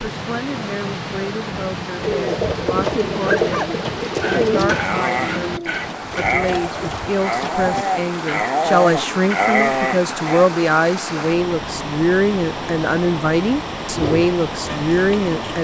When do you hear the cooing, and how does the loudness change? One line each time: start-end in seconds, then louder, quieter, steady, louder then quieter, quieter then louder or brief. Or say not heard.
1.9-7.8 quieter
13.9-15.5 brief.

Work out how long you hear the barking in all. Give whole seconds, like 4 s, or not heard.
7 s.